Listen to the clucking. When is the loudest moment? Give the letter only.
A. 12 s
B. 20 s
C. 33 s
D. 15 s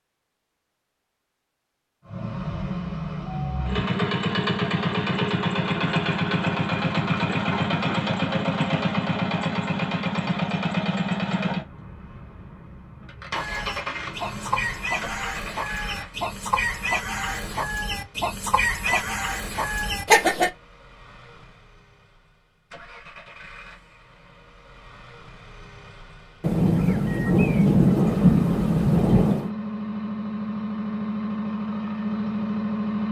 B.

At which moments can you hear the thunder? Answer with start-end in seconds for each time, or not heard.
26.4-29.5.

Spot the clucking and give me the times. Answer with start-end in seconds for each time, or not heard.
13.3-20.5.